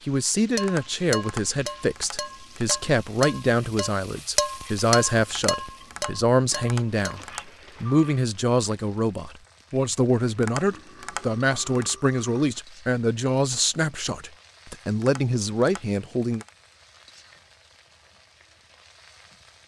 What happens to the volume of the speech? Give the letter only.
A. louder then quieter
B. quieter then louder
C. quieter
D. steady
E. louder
D.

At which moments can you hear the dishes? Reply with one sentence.
The dishes can be heard from 0.6 to 7.2 s.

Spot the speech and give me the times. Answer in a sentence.
The speech can be heard from 0.1 to 7.2 s and from 7.8 to 16.4 s.